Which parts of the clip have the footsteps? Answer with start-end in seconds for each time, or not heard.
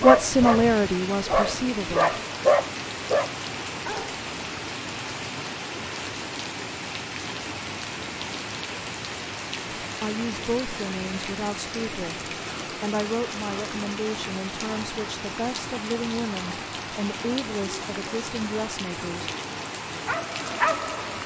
not heard.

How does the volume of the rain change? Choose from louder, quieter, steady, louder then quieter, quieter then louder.
steady.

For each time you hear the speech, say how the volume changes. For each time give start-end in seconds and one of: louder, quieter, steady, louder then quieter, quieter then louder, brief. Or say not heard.
0.0-2.2 brief
9.8-19.3 steady.